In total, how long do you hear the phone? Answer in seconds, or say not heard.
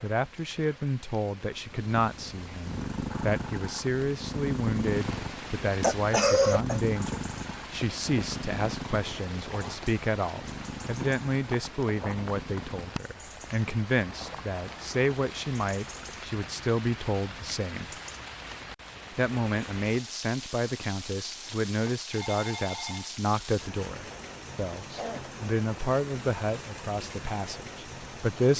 2 s.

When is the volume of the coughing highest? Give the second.
6 s.